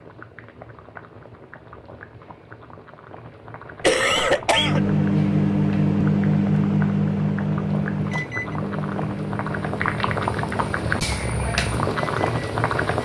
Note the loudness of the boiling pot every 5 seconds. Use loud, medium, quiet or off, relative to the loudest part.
quiet, medium, loud.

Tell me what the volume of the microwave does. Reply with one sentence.
The loudness of the microwave goes down.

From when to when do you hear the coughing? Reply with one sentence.
You can hear the coughing from 3.8 to 5.0 s.